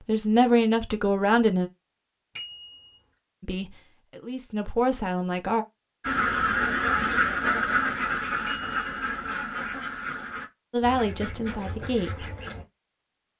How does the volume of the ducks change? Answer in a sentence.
The loudness of the ducks goes down.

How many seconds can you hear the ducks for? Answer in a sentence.
The ducks can be heard for 7 seconds in total.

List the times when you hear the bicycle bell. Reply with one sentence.
You can hear the bicycle bell from 2.4 to 3.2 s and from 8.4 to 10.0 s.